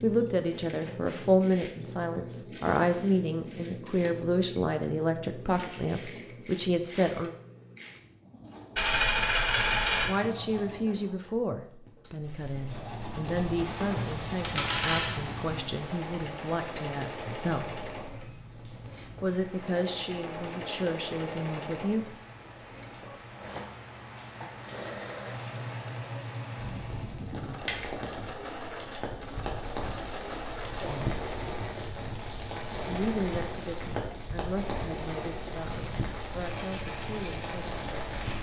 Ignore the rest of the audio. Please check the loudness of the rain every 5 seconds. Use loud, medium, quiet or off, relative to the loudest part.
off, off, medium, medium, medium, loud, loud, loud.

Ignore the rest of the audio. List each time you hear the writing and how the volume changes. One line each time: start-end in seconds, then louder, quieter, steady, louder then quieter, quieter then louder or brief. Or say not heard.
not heard.